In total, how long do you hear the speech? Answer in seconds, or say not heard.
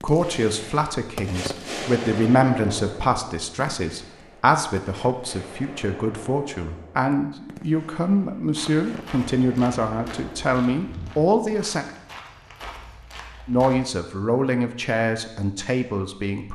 15 s.